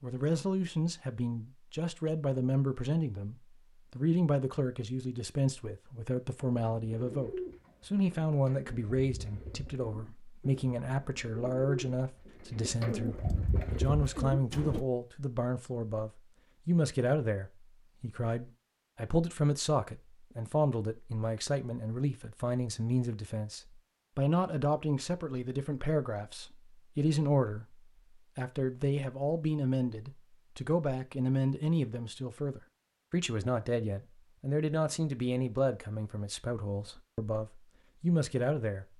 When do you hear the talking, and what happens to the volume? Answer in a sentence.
The talking can be heard from 0.0 to 27.8 s, at a steady volume; and from 28.4 to 38.9 s, at a steady volume.